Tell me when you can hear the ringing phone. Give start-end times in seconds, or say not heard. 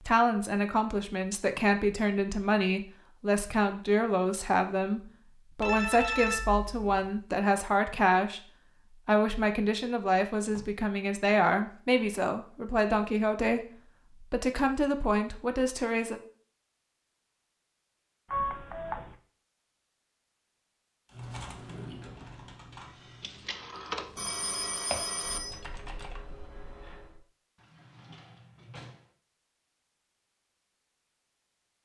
5.6-7.2, 18.3-19.1, 23.2-25.6.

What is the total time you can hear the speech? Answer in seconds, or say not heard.
16 s.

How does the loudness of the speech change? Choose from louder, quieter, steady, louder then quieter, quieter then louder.
steady.